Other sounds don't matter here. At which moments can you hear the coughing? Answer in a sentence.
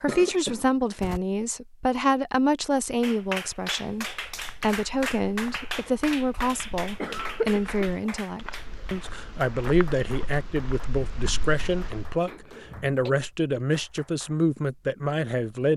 You can hear the coughing from 0.1 to 1.2 s, from 5.8 to 8.1 s and from 12.2 to 13.1 s.